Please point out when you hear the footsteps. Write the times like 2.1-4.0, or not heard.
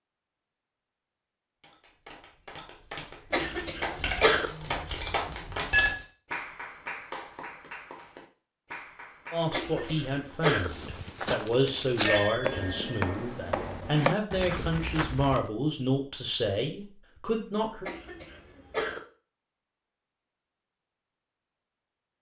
10.7-15.5.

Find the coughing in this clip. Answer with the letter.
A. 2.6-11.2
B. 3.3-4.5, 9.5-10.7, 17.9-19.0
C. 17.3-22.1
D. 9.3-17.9
B.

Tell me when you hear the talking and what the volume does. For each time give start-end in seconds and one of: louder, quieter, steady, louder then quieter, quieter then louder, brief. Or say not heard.
9.3-17.9 steady.